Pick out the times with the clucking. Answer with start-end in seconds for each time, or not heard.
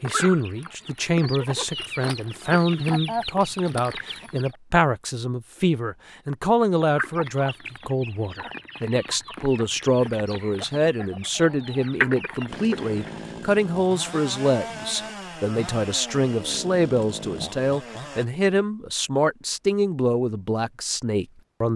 0.0-4.5, 6.8-13.2.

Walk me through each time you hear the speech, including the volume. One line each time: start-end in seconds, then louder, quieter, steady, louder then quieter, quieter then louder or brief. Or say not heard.
0.0-21.7 steady.